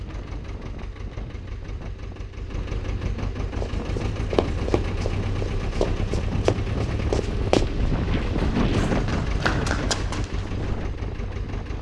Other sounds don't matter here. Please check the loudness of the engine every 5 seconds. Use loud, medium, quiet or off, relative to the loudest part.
loud, loud, medium.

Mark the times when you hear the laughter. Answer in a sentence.
The laughter can be heard from 2.9 to 4.2 s and from 8.2 to 9.2 s.